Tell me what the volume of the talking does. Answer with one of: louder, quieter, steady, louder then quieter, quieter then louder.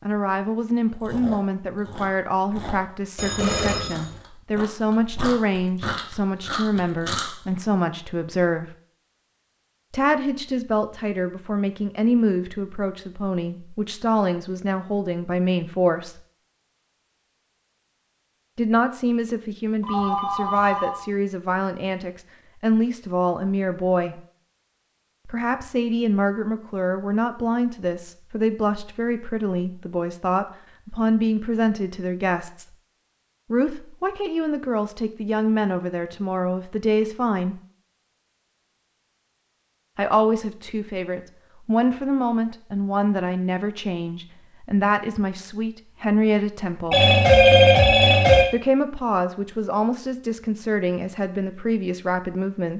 steady.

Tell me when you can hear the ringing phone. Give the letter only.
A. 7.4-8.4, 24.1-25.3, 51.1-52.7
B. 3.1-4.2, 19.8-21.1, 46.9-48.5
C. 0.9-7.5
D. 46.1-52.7
B.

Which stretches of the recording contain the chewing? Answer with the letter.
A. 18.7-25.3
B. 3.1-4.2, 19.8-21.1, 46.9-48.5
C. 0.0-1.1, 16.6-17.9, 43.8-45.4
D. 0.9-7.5
D.